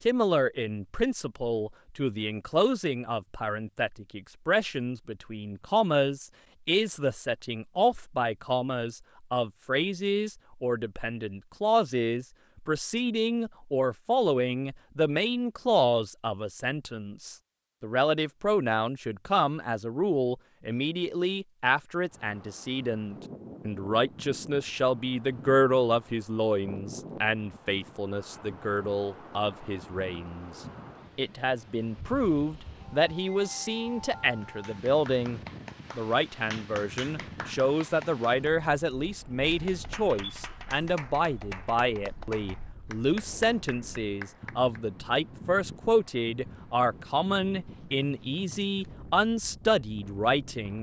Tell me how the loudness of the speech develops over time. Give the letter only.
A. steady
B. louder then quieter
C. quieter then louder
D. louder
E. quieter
A.